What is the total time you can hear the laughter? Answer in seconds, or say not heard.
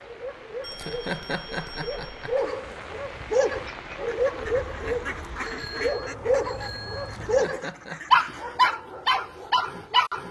3 s.